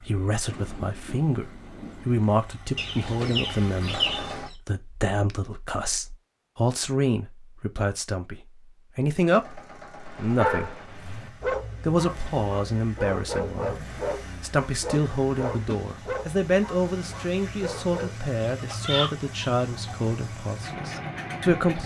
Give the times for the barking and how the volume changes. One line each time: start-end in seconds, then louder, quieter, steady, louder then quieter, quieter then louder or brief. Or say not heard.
9.9-18.2 quieter.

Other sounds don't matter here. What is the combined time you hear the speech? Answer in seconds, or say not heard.
21 s.